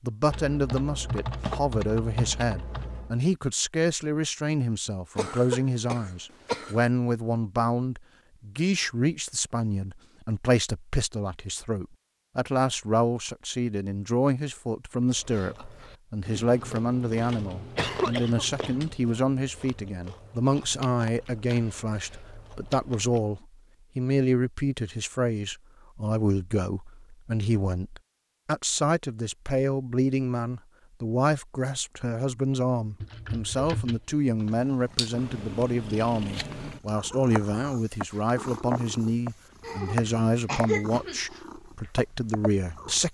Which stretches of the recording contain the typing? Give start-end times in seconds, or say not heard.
0.3-3.2, 16.2-18.9, 33.0-34.6.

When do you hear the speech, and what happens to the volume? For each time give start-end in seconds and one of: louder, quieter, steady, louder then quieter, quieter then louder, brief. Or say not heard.
0.0-43.0 steady.